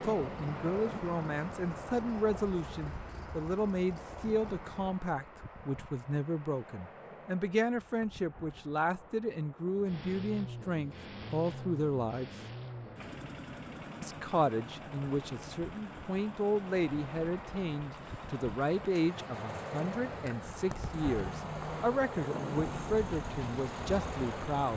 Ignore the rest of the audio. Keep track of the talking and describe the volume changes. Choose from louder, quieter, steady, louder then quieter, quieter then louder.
steady.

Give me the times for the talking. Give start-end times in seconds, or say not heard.
0.0-12.3, 14.0-24.7.